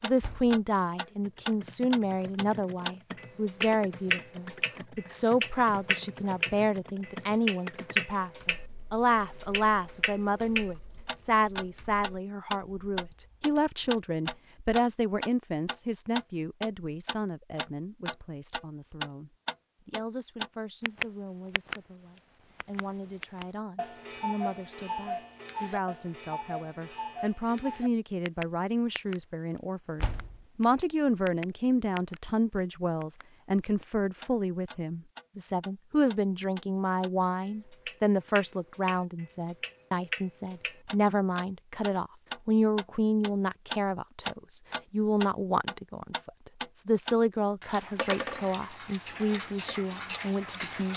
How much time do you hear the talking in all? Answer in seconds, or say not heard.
51 s.